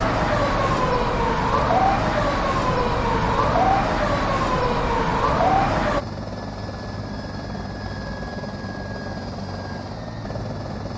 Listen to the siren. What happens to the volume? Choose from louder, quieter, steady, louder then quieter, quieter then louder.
steady.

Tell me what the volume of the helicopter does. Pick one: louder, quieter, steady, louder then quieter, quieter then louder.
steady.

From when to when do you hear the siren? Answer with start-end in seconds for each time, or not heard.
0.0-6.0.